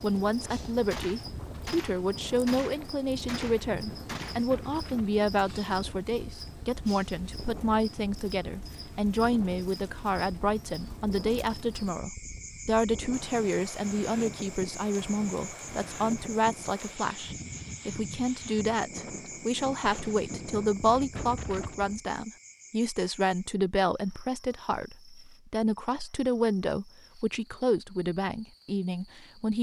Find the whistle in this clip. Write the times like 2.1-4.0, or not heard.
not heard.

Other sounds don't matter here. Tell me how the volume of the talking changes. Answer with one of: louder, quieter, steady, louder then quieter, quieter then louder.
steady.